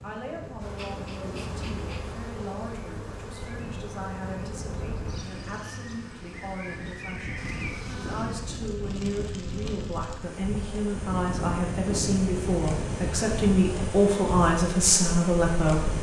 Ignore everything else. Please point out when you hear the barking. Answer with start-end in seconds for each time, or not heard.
not heard.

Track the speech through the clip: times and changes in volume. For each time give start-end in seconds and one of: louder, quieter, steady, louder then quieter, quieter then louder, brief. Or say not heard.
0.0-15.9 louder.